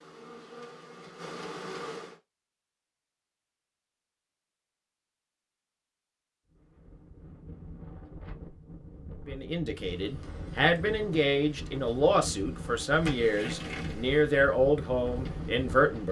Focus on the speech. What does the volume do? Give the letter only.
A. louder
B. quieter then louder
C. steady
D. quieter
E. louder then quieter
C.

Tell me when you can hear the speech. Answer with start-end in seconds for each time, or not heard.
9.2-16.0.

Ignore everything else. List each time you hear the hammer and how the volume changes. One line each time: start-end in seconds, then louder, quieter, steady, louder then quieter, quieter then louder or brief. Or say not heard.
not heard.